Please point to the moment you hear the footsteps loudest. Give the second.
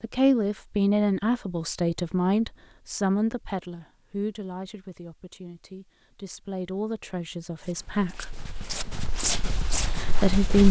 9 s.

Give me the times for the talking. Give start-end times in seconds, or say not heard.
0.0-8.3, 9.9-10.6.